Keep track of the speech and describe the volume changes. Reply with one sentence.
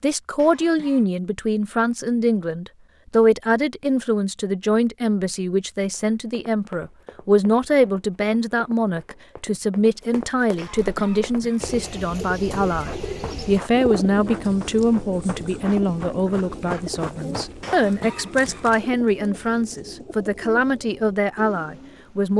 The loudness of the speech stays about the same.